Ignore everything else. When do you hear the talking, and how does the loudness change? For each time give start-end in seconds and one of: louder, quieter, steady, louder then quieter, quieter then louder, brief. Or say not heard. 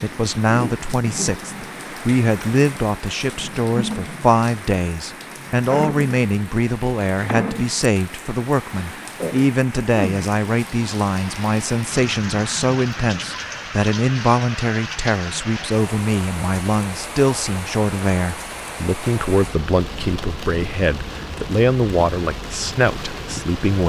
0.0-23.8 steady.